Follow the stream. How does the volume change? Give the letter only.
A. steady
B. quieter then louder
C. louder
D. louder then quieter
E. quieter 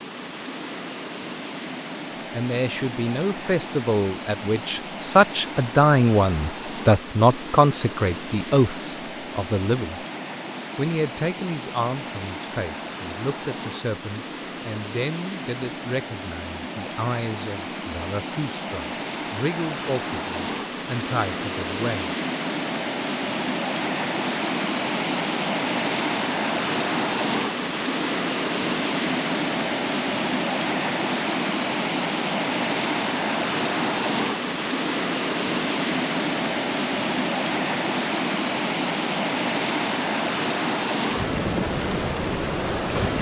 C.